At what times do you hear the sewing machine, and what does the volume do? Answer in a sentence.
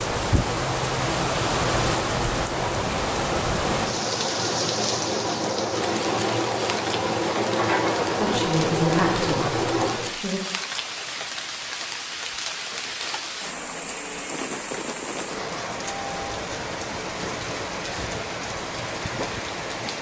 The sewing machine can be heard from 0.0 to 10.2 s, getting louder.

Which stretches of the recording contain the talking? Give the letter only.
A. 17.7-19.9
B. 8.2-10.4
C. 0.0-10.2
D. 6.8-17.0
B.